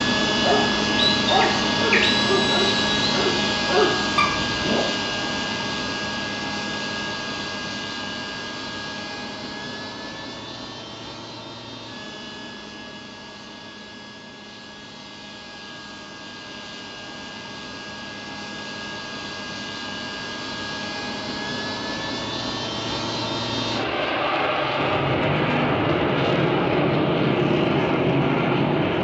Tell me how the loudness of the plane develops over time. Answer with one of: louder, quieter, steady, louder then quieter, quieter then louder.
quieter then louder.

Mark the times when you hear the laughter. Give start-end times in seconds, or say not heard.
not heard.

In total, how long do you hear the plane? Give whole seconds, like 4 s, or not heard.
29 s.